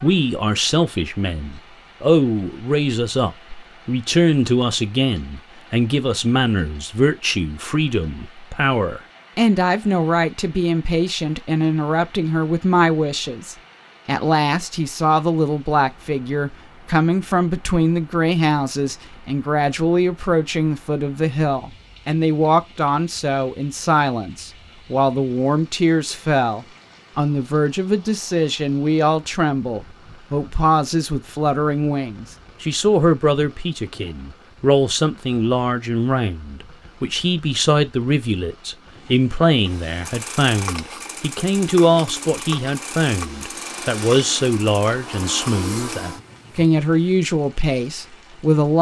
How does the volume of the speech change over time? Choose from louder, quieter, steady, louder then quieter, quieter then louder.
steady.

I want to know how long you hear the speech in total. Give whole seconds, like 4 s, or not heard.
49 s.